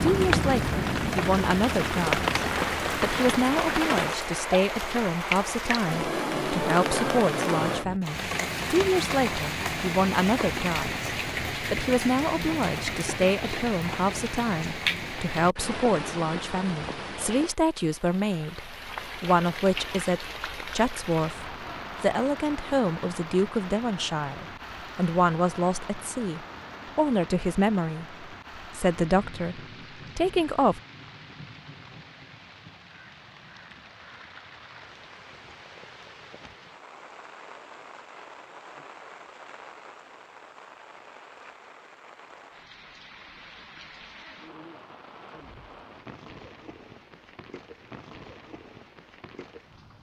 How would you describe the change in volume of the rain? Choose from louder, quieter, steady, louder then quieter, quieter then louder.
quieter.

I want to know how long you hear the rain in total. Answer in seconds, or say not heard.
50 s.